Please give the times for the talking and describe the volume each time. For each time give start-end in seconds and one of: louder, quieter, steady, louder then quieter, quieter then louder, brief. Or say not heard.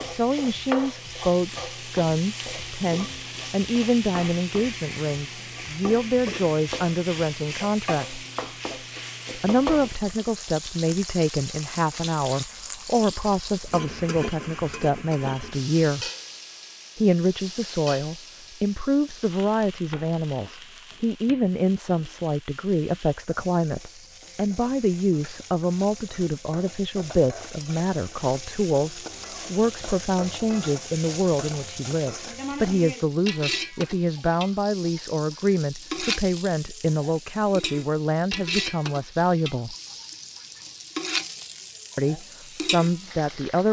0.0-8.2 steady
9.3-16.1 steady
16.9-39.8 steady
42.0-43.6 brief.